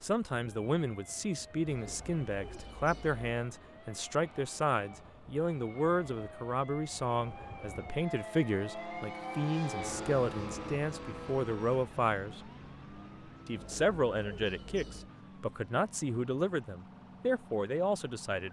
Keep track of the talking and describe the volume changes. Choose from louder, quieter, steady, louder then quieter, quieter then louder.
steady.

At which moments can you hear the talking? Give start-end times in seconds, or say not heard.
0.0-12.4, 13.4-18.4.